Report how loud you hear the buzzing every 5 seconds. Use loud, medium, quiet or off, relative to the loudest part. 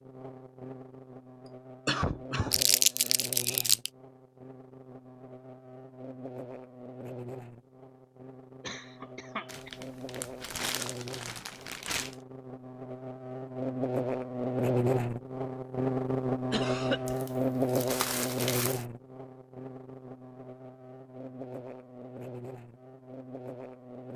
quiet, quiet, loud, loud, quiet.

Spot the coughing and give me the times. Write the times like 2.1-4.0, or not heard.
1.9-3.7, 8.6-9.8, 16.5-17.1.